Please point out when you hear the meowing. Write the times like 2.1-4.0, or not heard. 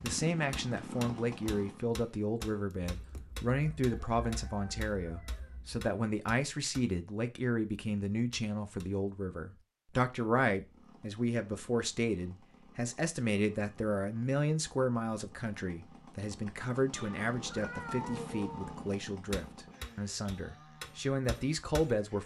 16.9-18.9.